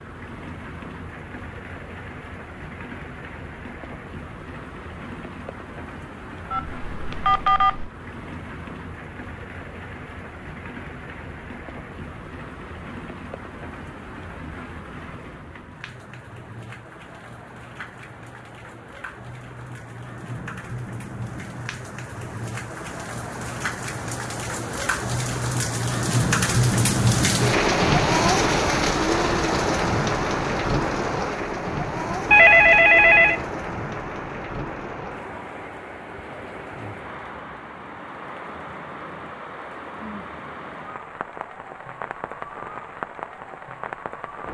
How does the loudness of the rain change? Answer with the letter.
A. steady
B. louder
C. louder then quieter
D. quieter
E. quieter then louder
C.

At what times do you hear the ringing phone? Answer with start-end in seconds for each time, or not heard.
6.5-7.9, 32.3-33.5.